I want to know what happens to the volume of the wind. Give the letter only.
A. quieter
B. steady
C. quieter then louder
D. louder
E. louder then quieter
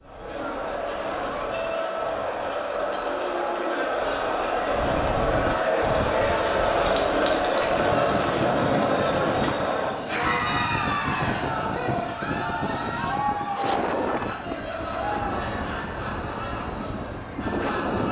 D.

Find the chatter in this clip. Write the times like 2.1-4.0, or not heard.
0.0-18.0.